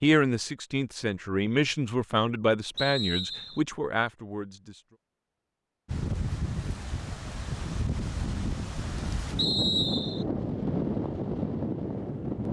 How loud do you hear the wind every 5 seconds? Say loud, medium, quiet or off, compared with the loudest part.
off, loud, loud.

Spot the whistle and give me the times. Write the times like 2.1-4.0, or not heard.
2.8-3.6, 9.3-10.2.